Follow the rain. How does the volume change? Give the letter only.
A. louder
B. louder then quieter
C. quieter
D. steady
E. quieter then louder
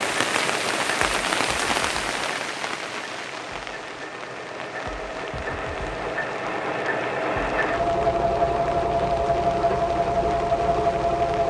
C.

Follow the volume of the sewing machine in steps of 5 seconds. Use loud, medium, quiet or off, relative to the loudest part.
quiet, loud, loud.